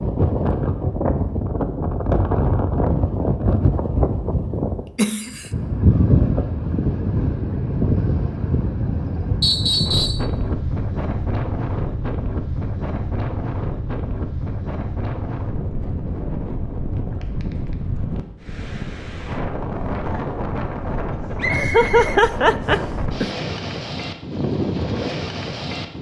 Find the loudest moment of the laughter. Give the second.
22 s.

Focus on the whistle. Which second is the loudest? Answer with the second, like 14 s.
10 s.